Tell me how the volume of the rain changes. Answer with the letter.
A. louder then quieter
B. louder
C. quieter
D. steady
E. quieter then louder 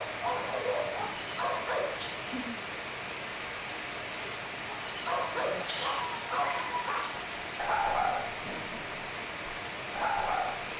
D.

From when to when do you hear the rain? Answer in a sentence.
You can hear the rain from 0.0 to 10.7 s.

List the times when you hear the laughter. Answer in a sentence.
The laughter can be heard from 2.1 to 2.6 s and from 8.4 to 8.8 s.